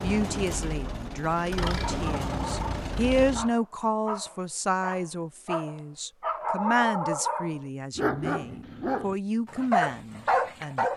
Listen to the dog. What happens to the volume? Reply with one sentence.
The volume of the dog goes up.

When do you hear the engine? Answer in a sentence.
You can hear the engine from 0.0 to 3.5 s.